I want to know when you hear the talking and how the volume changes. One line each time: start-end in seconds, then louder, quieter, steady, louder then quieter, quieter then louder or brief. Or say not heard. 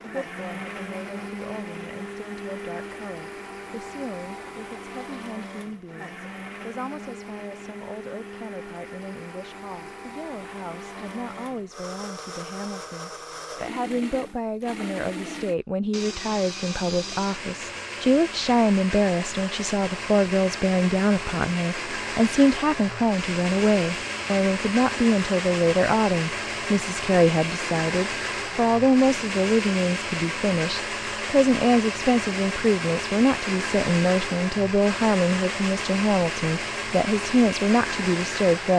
0.0-38.7 louder.